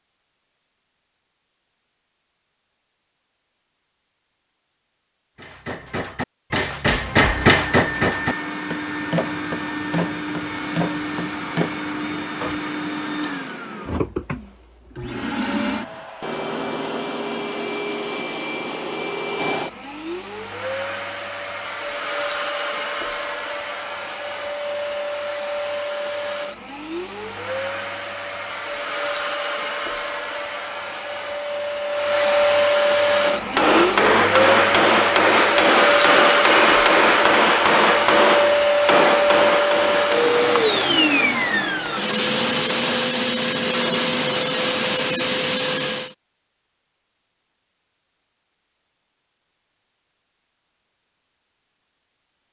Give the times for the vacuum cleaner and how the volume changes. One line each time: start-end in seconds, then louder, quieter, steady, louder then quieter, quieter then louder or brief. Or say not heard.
7.2-46.1 louder.